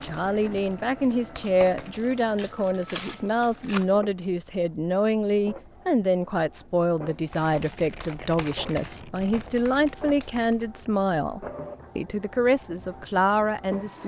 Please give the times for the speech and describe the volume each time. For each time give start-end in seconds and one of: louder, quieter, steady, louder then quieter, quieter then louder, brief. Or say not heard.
0.0-14.0 steady.